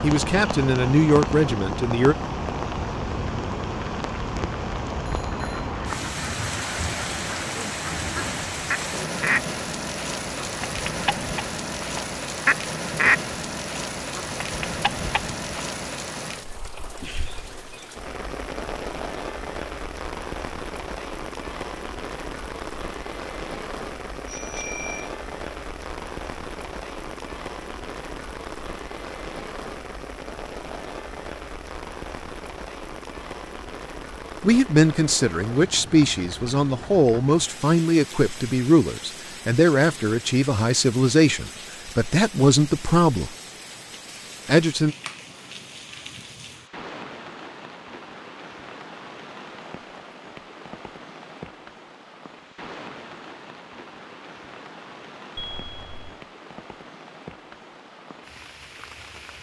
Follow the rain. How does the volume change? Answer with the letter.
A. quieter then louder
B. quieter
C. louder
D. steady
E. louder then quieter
B.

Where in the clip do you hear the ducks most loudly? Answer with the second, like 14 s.
13 s.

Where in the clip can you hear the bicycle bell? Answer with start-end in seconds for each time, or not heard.
5.0-5.7, 24.2-25.1, 55.4-56.2.